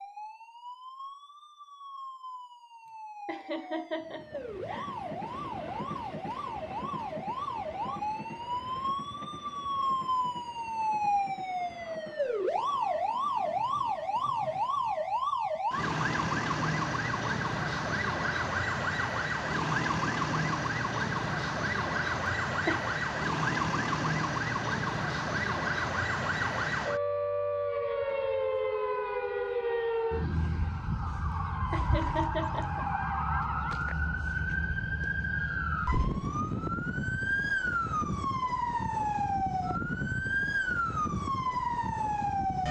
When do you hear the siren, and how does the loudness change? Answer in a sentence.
You can hear the siren from 0.0 to 42.6 s, getting louder.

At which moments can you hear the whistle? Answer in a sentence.
You can't hear the whistle here.